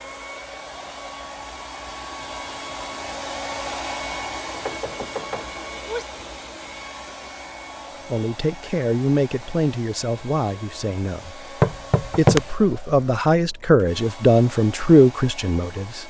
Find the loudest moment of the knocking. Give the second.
12 s.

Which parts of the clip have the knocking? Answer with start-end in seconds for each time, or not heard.
4.5-6.0, 11.6-12.4.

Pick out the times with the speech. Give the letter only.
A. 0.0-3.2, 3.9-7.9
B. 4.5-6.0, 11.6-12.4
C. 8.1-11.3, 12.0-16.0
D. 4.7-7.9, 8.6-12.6
C.